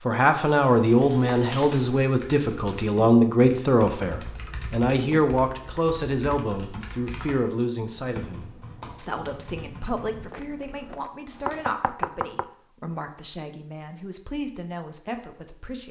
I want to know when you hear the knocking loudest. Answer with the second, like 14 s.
12 s.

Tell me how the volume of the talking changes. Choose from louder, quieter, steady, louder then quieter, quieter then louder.
quieter.